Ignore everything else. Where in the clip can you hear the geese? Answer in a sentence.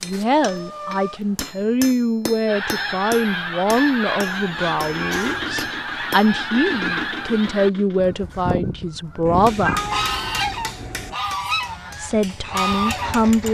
You can hear the geese from 2.5 to 13.2 s.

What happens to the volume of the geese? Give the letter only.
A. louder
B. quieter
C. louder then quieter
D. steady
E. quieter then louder
D.